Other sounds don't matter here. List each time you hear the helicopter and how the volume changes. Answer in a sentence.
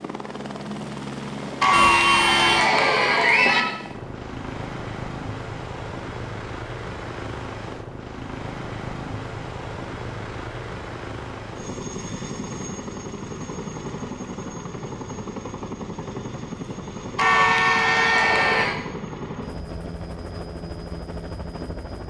The helicopter can be heard from 0.0 to 22.0 s, at a steady volume.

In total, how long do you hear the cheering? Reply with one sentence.
You can hear the cheering for 4 seconds altogether.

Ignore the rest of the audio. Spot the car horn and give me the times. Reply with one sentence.
The car horn can be heard from 1.7 to 2.7 s and from 17.2 to 18.7 s.